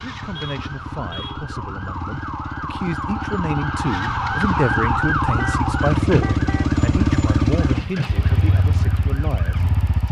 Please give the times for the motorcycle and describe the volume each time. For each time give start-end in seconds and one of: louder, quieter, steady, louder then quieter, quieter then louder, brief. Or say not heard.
0.0-10.0 louder then quieter.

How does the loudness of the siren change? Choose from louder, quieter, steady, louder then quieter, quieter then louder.
louder then quieter.